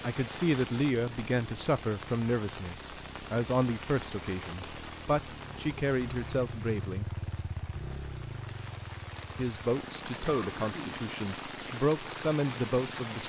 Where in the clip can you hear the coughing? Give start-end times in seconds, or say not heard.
10.2-11.0.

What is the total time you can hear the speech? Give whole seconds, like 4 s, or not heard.
11 s.